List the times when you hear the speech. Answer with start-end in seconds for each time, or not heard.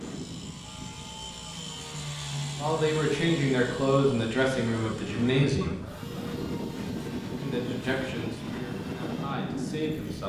2.5-5.8, 7.2-10.2.